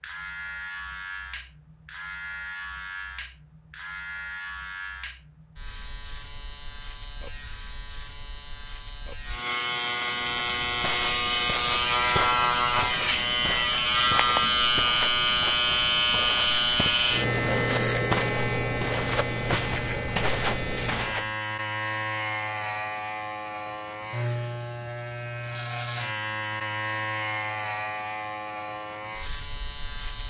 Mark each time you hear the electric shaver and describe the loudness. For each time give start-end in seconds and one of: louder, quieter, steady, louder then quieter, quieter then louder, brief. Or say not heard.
0.0-30.2 louder then quieter.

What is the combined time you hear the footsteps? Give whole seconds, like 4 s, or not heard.
11 s.